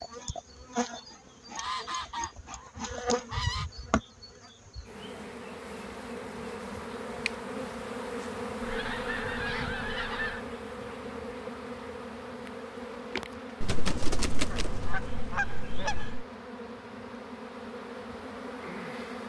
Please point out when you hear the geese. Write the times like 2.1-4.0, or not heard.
1.6-3.6, 8.6-10.4, 13.6-16.2.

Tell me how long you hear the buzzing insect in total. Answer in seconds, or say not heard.
19 s.